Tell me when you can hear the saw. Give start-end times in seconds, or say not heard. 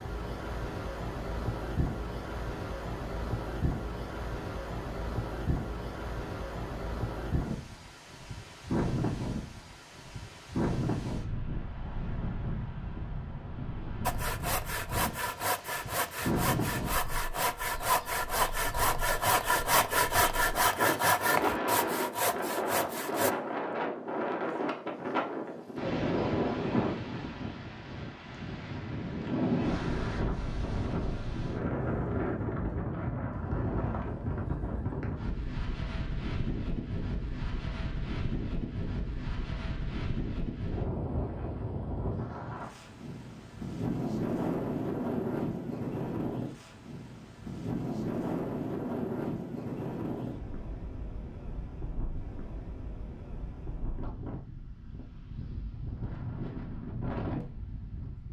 14.1-23.4.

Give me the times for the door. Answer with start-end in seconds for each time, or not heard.
not heard.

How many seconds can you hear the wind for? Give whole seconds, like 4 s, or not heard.
58 s.